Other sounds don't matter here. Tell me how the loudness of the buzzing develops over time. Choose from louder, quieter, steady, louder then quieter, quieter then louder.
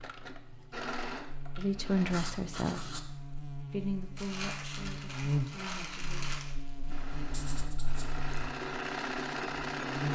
louder then quieter.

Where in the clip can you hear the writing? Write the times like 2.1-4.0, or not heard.
2.1-3.0, 7.2-8.5.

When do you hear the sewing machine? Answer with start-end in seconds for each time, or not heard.
0.0-2.2, 6.8-10.1.